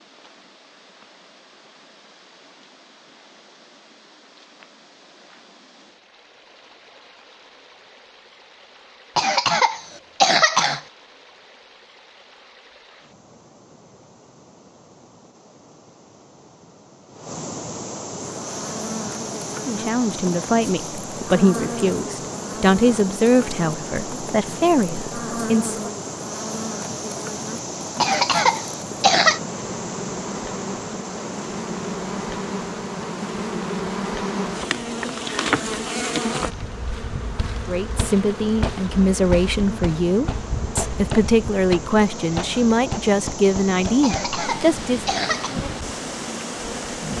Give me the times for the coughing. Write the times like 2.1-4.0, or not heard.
9.2-10.8, 28.0-29.4, 44.0-45.5.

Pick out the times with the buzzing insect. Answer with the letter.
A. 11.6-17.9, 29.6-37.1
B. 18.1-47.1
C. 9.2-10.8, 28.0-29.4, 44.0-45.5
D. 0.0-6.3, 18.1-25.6
B.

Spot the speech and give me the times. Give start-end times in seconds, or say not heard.
19.6-25.9, 37.6-45.1.